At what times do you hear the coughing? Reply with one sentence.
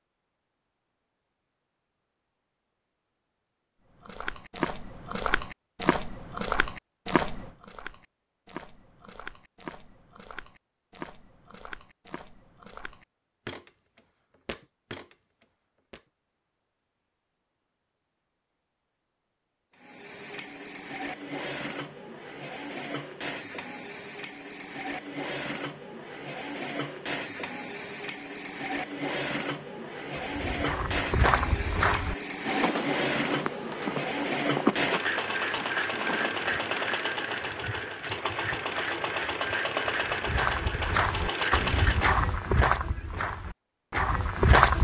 You can't hear the coughing here.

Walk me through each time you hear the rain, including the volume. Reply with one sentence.
You can't hear the rain here.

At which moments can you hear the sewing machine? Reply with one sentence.
The sewing machine can be heard from 19.8 to 42.2 s.